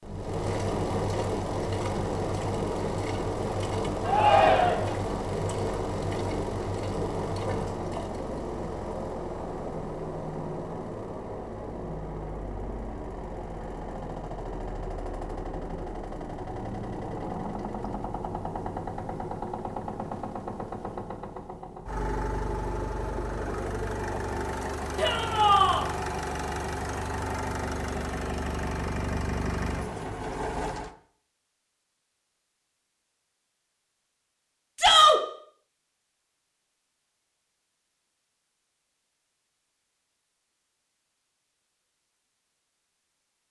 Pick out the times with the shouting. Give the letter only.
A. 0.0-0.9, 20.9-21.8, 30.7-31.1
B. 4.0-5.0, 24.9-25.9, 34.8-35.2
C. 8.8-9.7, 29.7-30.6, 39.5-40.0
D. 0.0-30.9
B.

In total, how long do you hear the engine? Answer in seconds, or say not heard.
31 s.